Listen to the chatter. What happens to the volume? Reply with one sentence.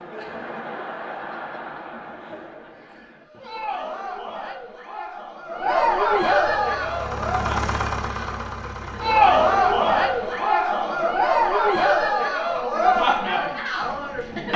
The loudness of the chatter goes up.